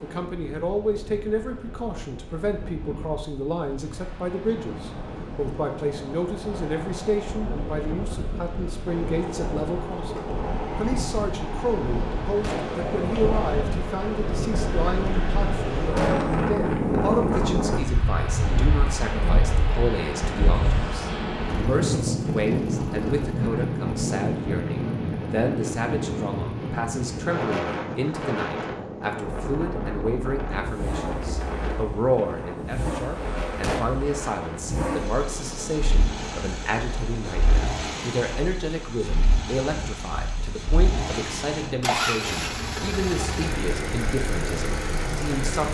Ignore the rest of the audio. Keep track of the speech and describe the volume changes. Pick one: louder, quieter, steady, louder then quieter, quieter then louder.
steady.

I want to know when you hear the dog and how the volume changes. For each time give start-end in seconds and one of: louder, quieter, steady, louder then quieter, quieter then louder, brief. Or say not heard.
not heard.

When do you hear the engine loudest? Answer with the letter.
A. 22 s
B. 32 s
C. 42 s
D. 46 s
C.